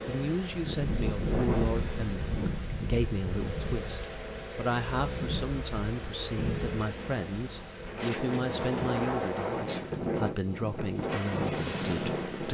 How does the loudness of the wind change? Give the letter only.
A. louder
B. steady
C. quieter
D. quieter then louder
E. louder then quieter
D.